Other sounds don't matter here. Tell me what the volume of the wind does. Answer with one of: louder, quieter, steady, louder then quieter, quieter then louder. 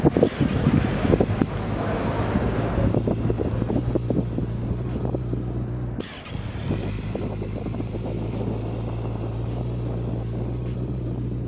quieter.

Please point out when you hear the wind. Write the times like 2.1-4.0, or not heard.
0.0-11.4.